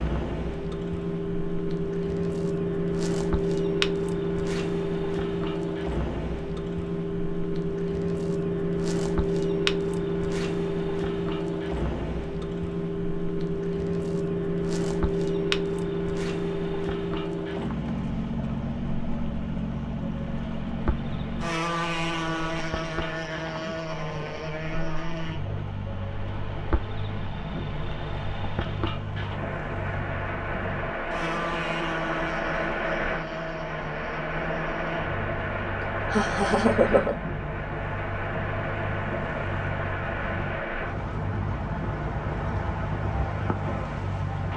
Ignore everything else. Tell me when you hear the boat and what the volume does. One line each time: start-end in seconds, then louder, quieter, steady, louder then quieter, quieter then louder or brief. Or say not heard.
0.0-44.5 quieter.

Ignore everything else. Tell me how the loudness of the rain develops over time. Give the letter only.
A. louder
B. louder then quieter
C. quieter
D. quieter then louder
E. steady
A.